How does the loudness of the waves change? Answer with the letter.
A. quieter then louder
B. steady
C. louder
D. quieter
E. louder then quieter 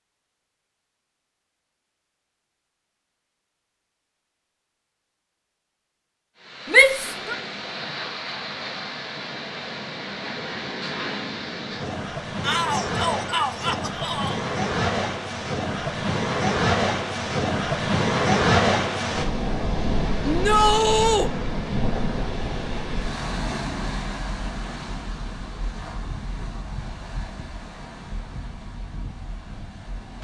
E.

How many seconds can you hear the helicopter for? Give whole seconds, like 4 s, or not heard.
not heard.